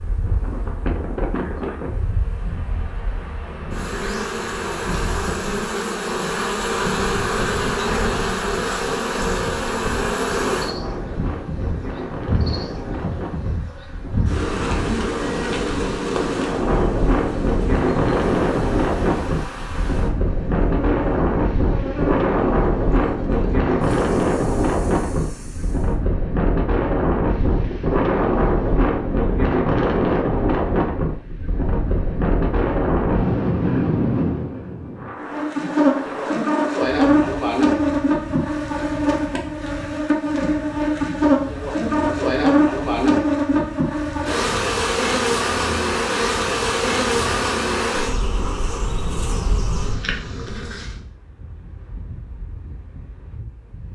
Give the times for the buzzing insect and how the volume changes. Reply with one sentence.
The buzzing insect can be heard from 0.0 to 25.9 s, getting louder then quieter; and from 35.2 to 50.9 s, getting quieter.